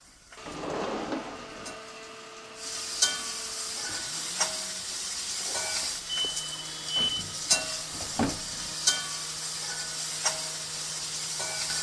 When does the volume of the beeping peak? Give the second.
7 s.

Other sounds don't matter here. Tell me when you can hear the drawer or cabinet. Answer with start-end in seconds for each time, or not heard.
0.5-1.8, 7.0-8.8.